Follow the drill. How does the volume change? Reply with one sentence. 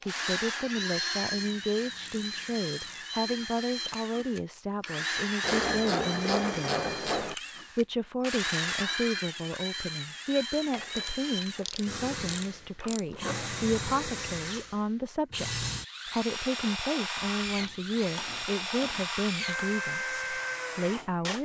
The volume of the drill stays about the same.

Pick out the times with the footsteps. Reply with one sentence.
You can't hear the footsteps here.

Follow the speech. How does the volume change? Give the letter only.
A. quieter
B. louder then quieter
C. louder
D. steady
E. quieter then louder
D.